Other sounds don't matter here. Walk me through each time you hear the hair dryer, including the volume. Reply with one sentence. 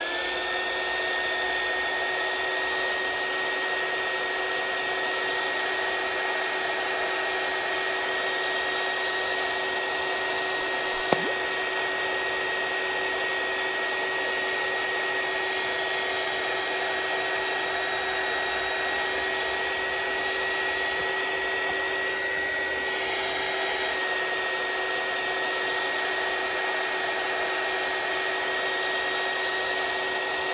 You can hear the hair dryer from 0.0 to 30.4 s, at a steady volume.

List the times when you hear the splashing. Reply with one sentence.
You can hear the splashing from 10.9 to 11.3 s.